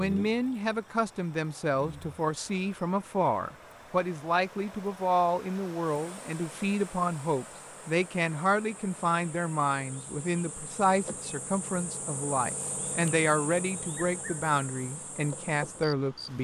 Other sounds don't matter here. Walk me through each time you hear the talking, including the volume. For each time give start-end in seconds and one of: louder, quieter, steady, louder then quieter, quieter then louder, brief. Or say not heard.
0.0-16.4 steady.